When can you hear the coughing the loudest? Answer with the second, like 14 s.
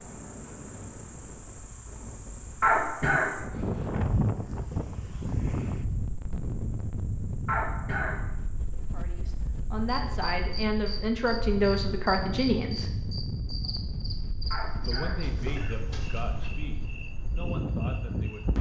3 s.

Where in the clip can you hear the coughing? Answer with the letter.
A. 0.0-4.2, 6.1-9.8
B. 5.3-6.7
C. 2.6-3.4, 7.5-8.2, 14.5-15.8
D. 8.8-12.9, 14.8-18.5
C.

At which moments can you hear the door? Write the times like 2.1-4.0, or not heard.
15.2-16.6.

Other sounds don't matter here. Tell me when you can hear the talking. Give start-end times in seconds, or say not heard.
8.8-12.9, 14.8-18.5.